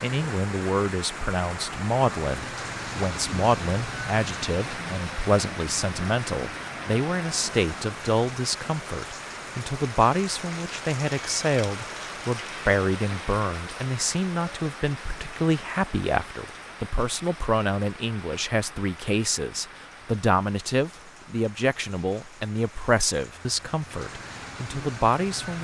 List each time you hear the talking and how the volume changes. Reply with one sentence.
You can hear the talking from 0.0 to 25.6 s, at a steady volume.